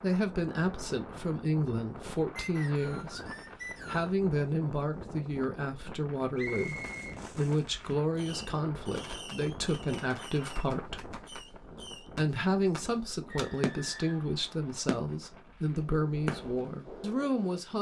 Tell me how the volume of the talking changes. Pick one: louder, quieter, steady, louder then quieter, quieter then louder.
steady.